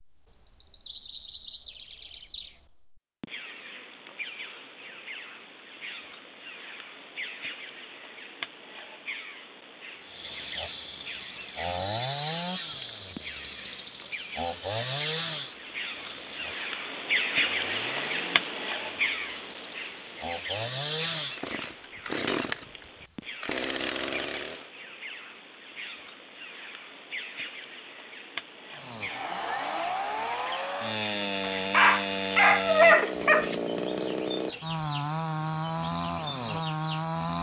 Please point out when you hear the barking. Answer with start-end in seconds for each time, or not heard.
31.4-33.5.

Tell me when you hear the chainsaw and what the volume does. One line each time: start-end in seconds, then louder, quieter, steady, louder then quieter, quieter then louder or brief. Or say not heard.
10.0-24.7 quieter then louder
28.8-37.3 steady.